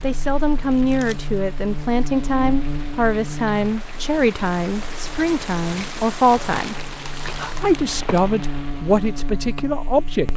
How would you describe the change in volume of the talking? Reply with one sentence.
The volume of the talking stays about the same.